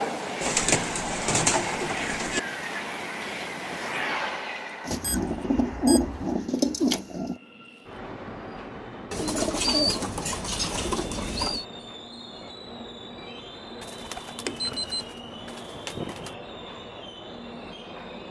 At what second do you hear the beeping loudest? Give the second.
15 s.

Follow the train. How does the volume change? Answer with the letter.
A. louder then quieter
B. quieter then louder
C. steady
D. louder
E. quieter
E.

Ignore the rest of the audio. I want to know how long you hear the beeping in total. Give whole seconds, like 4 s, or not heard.
2 s.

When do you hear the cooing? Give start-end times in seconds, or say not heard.
0.4-2.4, 4.8-7.3, 9.1-11.7, 13.8-16.4.